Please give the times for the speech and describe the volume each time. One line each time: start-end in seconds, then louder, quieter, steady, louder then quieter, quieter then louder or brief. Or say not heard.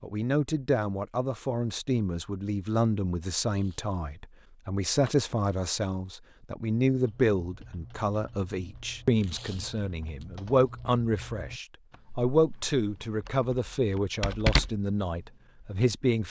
0.0-16.2 steady.